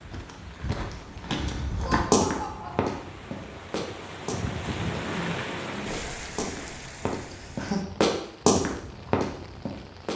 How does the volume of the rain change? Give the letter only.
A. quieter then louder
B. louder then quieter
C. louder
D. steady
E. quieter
B.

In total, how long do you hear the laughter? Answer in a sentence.
You can hear the laughter for 2 seconds altogether.